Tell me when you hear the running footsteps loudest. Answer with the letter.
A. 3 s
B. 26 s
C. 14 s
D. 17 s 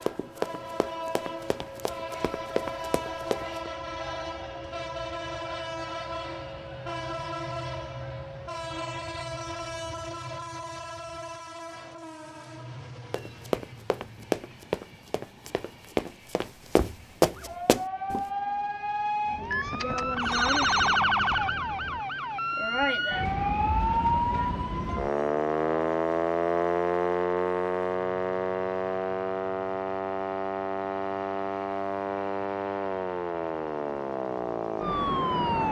D.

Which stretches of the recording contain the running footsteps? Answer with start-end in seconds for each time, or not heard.
0.0-3.7, 13.1-18.2.